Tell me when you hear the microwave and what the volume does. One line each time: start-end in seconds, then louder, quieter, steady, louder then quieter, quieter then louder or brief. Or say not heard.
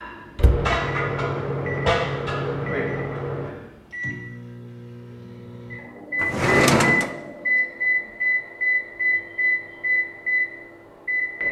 0.0-11.4 quieter then louder.